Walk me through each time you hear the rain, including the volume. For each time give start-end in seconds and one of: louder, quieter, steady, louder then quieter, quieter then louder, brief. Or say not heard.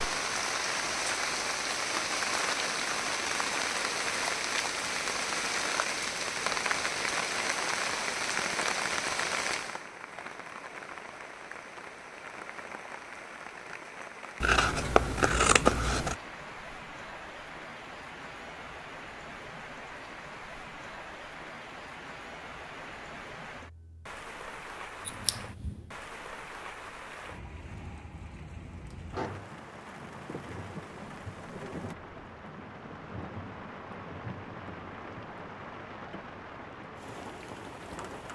0.0-38.2 quieter.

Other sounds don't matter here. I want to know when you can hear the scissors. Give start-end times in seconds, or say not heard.
14.4-16.1, 25.1-25.9.